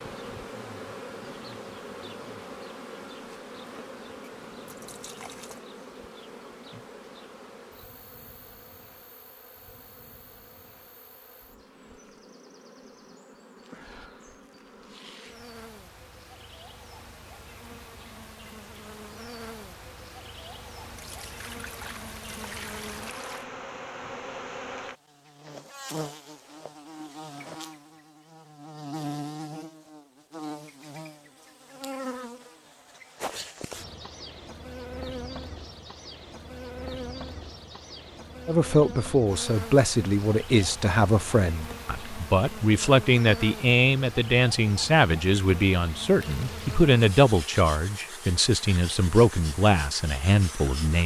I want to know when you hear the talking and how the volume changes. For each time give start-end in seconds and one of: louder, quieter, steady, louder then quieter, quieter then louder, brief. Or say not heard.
38.5-51.0 steady.